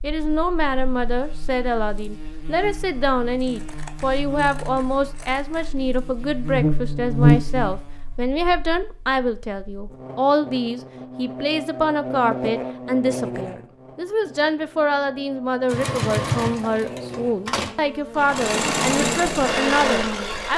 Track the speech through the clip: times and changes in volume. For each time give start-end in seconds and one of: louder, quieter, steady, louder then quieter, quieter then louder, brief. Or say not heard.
0.0-20.5 steady.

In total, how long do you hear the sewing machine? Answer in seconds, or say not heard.
5 s.